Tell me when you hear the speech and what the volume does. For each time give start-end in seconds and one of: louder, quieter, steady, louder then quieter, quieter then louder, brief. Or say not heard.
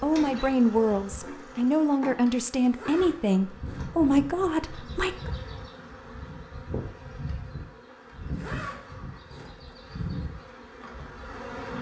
0.0-5.3 steady.